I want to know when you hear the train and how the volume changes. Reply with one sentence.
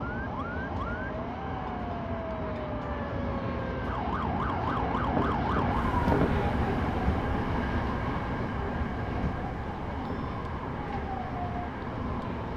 The train can be heard from 0.0 to 12.5 s, getting louder then quieter.